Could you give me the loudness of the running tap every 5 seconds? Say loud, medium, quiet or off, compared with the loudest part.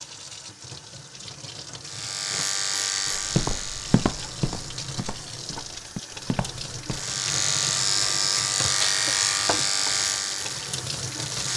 medium, loud, loud.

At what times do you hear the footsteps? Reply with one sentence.
The footsteps can be heard from 3.1 to 7.0 s.